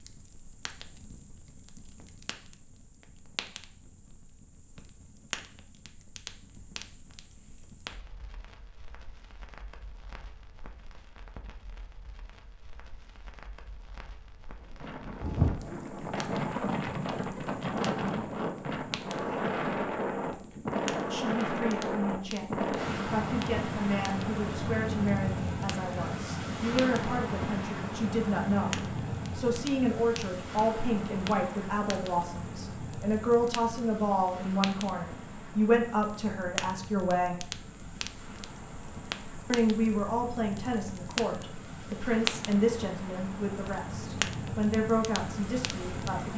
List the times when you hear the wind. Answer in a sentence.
The wind can be heard from 14.6 to 46.3 s.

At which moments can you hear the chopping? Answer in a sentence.
You can't hear the chopping here.